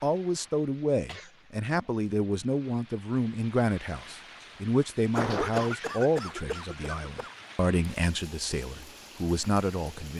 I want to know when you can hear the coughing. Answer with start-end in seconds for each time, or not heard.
1.1-1.9, 5.2-7.3.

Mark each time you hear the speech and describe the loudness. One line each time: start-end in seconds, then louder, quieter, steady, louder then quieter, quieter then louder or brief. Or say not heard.
0.0-10.1 steady.